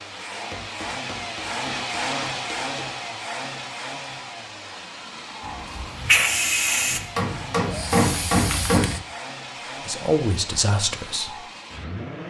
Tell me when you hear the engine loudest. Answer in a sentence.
The volume of the engine peaks at 2 seconds.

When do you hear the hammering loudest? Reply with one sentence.
The volume of the hammering peaks at 8 seconds.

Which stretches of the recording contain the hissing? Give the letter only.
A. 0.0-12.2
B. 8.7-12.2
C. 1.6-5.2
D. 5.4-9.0
D.